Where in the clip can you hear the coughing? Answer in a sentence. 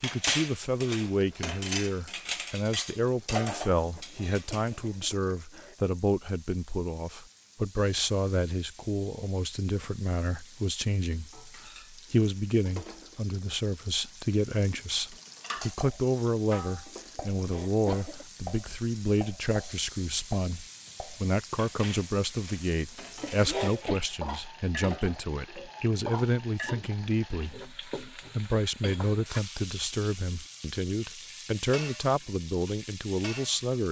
The coughing can be heard from 4.1 to 5.8 s, from 17.2 to 18.2 s and from 23.2 to 24.0 s.